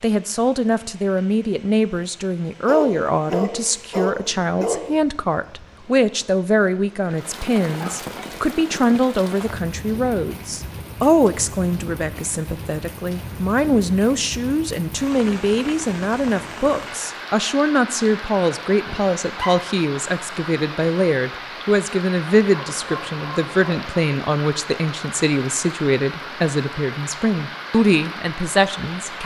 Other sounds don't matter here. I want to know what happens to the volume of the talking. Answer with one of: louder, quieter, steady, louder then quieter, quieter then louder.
steady.